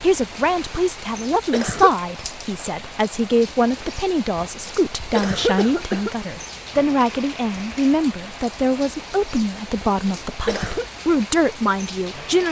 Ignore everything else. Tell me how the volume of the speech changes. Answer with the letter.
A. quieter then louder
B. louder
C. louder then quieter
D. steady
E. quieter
D.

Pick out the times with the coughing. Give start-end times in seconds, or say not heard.
1.2-1.9, 5.2-6.1, 10.2-10.8.